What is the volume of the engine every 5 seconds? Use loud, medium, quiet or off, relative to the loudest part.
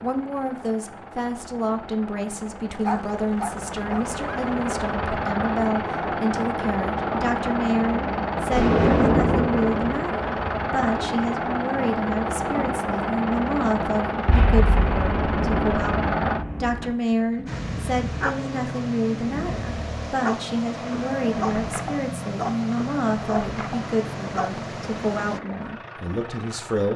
medium, loud, loud, loud, medium, quiet.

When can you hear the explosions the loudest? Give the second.
9 s.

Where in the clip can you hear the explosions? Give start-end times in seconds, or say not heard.
8.5-10.0, 14.2-16.9.